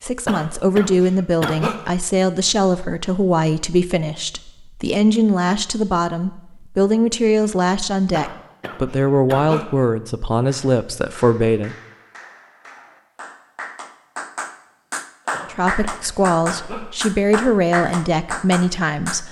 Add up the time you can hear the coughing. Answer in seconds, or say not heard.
5 s.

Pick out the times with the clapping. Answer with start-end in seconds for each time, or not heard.
10.4-19.2.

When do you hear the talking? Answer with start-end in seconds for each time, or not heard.
0.0-11.8, 15.5-19.2.